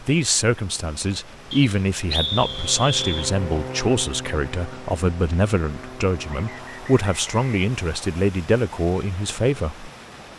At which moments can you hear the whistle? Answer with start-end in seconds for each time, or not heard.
1.5-3.3, 6.2-8.2.